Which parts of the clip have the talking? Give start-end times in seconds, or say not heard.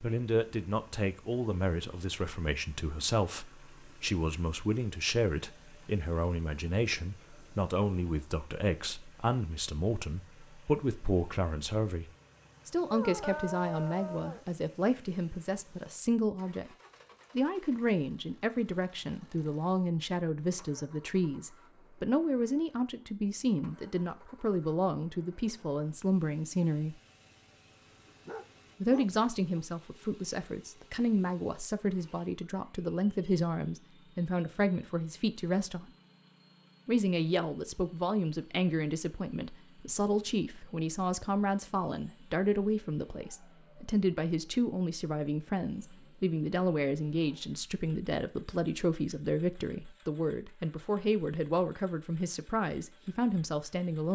0.0-16.7, 17.4-26.9, 28.8-35.9, 36.9-54.1.